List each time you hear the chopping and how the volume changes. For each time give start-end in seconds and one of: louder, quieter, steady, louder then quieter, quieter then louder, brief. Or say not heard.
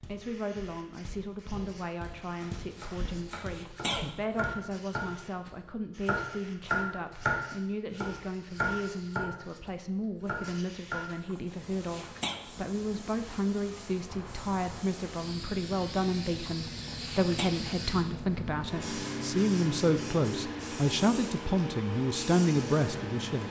2.0-11.1 louder then quieter.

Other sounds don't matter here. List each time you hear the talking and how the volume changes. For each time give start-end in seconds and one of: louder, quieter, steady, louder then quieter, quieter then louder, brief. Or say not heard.
0.1-23.4 louder.